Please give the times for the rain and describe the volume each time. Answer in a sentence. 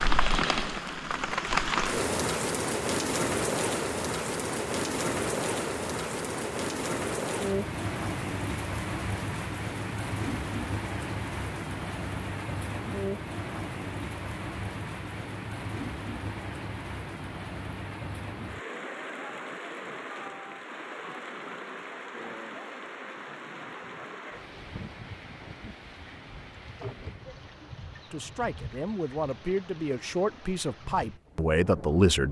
The rain can be heard from 0.0 to 32.2 s, getting quieter.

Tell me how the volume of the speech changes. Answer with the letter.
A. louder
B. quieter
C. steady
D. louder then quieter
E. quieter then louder
A.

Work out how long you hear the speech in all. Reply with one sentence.
The speech can be heard for 4 seconds in total.